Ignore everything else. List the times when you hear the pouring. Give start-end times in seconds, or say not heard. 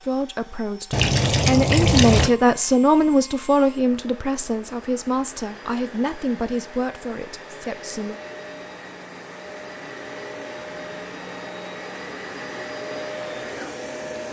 0.9-2.3.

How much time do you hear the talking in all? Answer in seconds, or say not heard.
8 s.